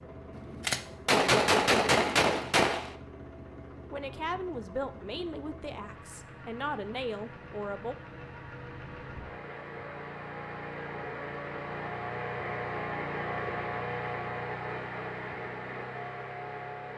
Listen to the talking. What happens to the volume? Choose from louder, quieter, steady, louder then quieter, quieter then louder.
quieter then louder.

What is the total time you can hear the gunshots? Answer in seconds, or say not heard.
3 s.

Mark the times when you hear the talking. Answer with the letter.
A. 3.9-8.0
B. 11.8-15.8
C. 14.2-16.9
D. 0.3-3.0
A.